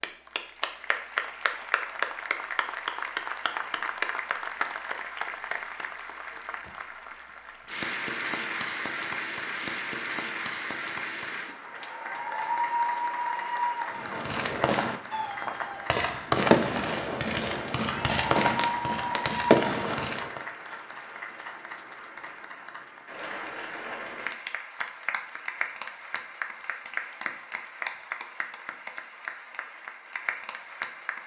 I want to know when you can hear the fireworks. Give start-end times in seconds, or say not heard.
13.9-20.4.